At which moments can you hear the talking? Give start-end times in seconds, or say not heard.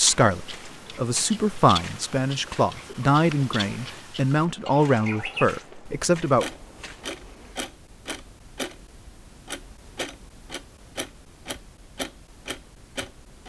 0.0-6.5.